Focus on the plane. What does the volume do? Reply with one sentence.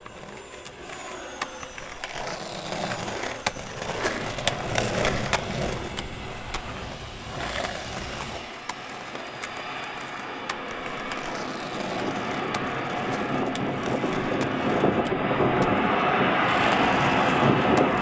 The volume of the plane goes up.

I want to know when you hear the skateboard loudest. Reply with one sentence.
The volume of the skateboard peaks at 5 seconds.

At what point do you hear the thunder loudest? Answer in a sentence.
The loudest moment of the thunder is at 5 seconds.